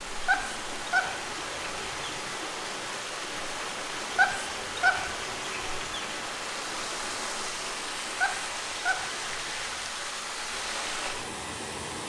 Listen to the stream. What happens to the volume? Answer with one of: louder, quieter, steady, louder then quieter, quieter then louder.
steady.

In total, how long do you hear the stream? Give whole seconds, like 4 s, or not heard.
12 s.